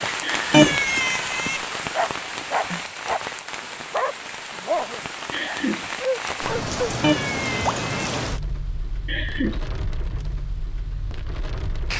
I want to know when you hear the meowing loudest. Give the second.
1 s.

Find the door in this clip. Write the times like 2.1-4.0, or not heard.
not heard.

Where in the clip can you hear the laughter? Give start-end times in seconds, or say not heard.
0.2-0.8, 5.3-5.9, 9.1-9.7.